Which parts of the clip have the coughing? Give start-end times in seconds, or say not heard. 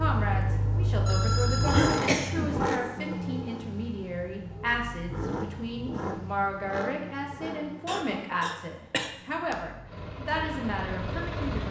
1.7-3.0, 7.8-9.6.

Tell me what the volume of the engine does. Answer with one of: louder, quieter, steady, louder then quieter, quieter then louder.
quieter.